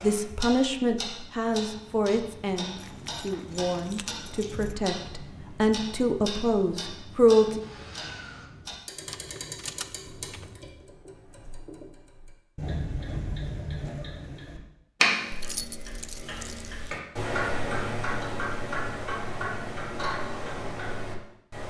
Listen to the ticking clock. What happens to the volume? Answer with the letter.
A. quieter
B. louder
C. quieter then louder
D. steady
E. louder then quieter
B.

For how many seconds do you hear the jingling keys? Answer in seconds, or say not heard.
5 s.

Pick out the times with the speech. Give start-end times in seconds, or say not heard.
0.0-7.6.